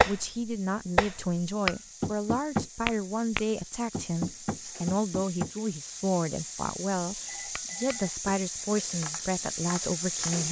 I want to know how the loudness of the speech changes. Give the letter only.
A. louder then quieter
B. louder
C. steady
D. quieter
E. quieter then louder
C.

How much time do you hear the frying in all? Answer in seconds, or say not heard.
10 s.